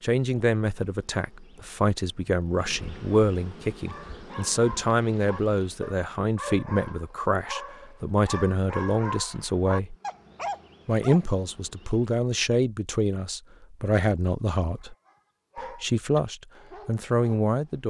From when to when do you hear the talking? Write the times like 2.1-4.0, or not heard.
0.0-9.9, 10.8-14.9, 15.6-17.8.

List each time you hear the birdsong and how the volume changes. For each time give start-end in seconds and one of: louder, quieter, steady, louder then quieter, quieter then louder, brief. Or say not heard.
not heard.